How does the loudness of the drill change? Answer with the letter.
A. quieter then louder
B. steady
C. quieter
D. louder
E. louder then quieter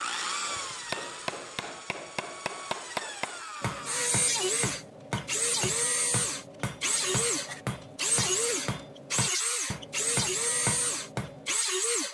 D.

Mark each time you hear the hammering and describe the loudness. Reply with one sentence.
The hammering can be heard from 0.5 to 11.6 s, at a steady volume.